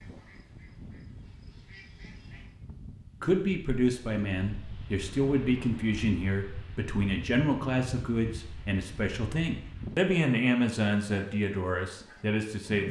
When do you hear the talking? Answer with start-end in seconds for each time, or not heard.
3.2-12.8.